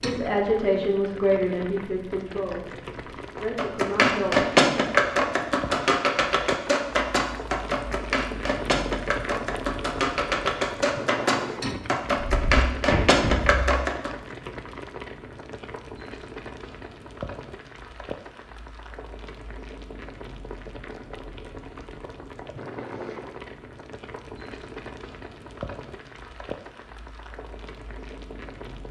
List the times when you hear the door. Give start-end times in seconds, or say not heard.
12.2-13.8.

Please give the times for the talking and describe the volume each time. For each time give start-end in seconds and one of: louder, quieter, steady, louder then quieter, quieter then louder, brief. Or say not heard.
0.0-4.5 quieter then louder.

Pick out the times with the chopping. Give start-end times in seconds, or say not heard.
3.4-14.1.